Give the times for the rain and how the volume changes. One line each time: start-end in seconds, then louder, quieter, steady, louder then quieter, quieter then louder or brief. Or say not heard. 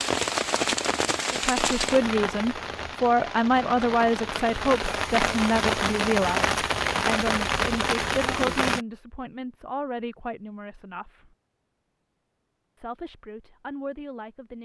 0.0-8.8 quieter then louder.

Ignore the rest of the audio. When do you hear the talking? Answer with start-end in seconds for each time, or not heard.
1.3-11.3, 12.8-14.5.